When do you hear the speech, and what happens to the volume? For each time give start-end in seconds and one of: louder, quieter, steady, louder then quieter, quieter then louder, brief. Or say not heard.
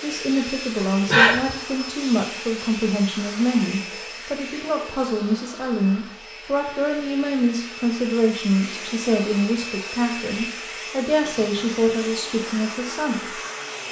0.0-13.3 steady.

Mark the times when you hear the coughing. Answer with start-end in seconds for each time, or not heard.
1.1-1.6, 11.2-11.7.